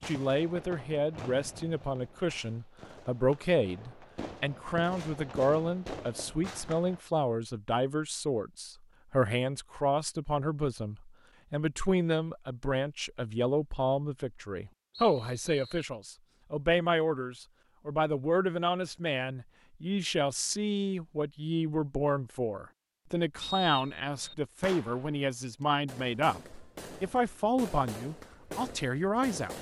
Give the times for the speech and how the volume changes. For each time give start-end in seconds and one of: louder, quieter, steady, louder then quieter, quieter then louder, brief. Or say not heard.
0.1-29.5 steady.